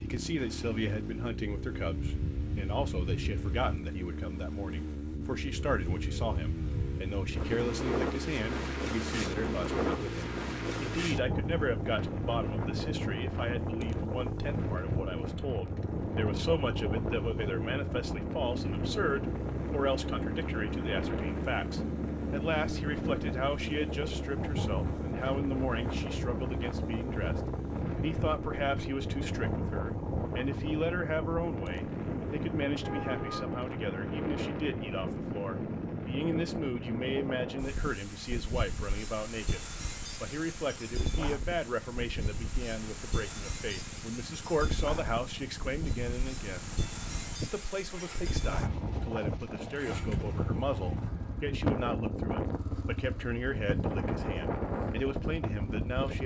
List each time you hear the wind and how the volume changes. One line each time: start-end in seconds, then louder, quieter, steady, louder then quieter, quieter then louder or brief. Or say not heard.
0.0-56.2 steady.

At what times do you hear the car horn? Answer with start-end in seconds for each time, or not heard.
32.8-33.5.